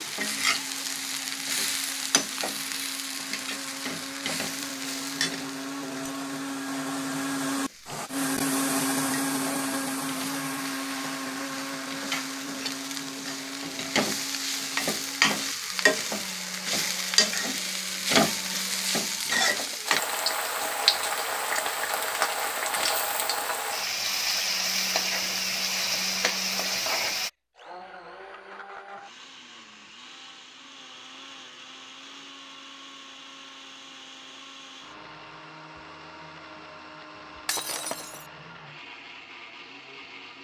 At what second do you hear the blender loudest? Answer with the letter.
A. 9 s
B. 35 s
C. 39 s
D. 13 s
A.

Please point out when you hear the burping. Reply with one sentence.
The burping can't be heard in this clip.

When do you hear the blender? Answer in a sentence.
The blender can be heard from 0.0 to 19.2 s and from 24.4 to 40.4 s.